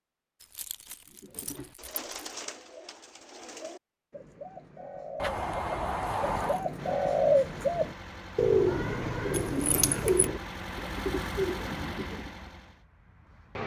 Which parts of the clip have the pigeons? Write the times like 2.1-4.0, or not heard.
1.1-12.3.